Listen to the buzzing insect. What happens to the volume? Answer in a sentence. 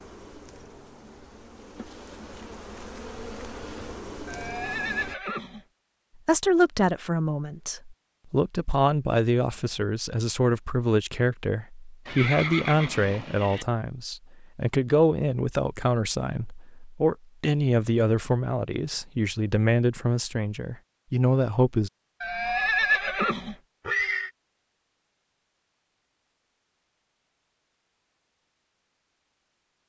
The loudness of the buzzing insect goes up.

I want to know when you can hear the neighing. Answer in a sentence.
You can hear the neighing from 4.2 to 5.7 s, from 12.1 to 13.7 s and from 22.2 to 24.3 s.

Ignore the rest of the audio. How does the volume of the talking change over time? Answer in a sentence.
The volume of the talking stays about the same.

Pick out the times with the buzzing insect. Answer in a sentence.
You can hear the buzzing insect from 0.0 to 5.2 s.